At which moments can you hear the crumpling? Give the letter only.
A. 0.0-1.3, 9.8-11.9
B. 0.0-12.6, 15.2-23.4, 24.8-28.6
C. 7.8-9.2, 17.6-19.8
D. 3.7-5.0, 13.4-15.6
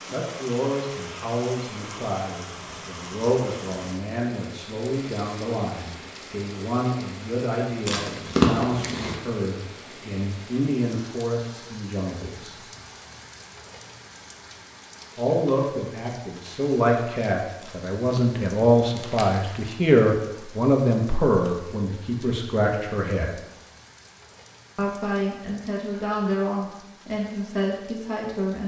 C.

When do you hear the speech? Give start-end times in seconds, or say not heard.
0.0-12.6, 15.2-23.4, 24.8-28.6.